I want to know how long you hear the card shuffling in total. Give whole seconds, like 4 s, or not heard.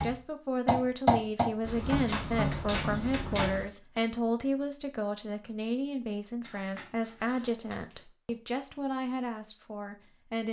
4 s.